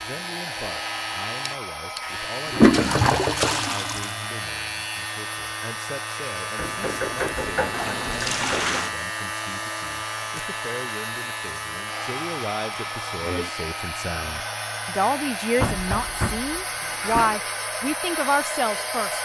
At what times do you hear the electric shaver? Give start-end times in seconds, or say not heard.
0.0-19.1.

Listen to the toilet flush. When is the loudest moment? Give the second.
3 s.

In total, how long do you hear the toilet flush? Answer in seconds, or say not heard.
5 s.